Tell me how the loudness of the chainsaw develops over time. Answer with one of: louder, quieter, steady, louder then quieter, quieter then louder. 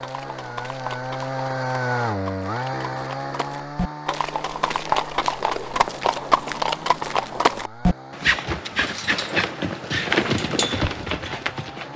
quieter.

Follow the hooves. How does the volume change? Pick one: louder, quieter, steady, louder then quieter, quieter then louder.
louder.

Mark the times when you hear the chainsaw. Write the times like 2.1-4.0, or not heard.
0.0-11.9.